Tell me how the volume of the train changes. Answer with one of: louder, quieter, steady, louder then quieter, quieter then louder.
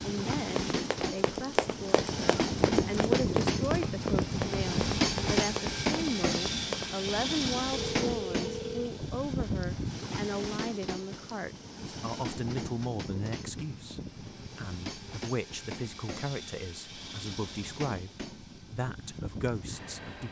quieter.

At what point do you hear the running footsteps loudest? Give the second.
3 s.